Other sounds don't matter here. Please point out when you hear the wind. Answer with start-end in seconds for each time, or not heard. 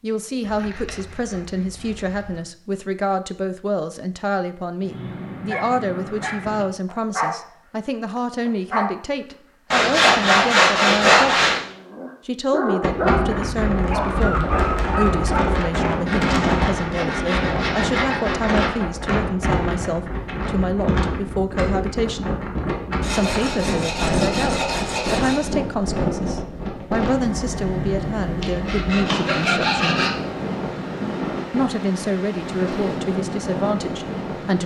12.8-34.6.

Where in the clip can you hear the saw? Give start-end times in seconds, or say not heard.
0.4-2.4, 9.7-11.6, 16.1-18.8, 23.0-25.5, 28.4-30.1.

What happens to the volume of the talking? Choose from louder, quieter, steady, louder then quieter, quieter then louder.
steady.